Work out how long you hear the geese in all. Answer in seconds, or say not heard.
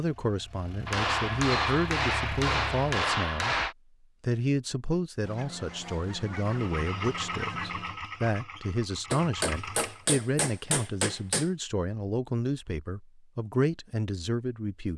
3 s.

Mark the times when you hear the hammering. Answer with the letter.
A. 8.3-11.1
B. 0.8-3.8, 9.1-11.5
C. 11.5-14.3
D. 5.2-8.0
B.